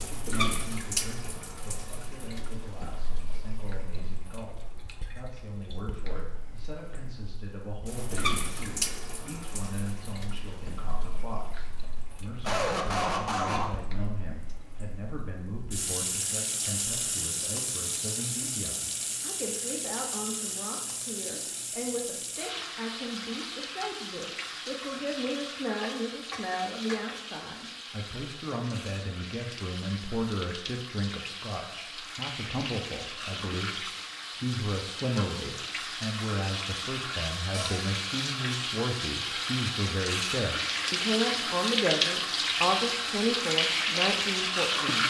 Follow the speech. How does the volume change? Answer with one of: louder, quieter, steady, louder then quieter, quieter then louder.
louder.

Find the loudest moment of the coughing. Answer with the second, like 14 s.
13 s.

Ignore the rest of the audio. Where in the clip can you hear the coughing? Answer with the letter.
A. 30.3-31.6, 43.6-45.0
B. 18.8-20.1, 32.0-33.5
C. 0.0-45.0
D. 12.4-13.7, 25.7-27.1
D.